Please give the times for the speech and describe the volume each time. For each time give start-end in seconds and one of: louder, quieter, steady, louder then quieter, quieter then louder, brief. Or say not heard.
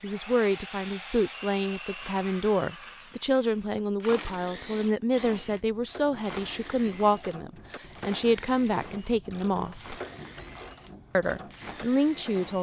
0.0-9.9 steady
11.2-12.5 brief.